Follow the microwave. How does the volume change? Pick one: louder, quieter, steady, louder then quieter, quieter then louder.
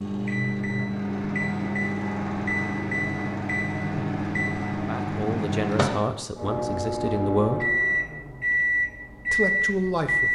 steady.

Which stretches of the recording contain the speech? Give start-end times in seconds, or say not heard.
4.8-7.7, 9.3-10.2.